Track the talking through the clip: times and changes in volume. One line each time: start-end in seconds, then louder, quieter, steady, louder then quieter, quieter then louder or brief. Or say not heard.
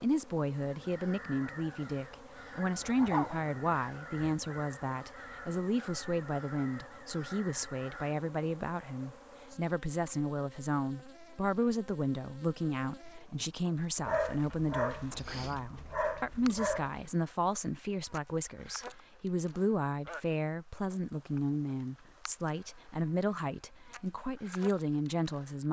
0.0-25.6 steady.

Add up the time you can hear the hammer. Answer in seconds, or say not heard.
not heard.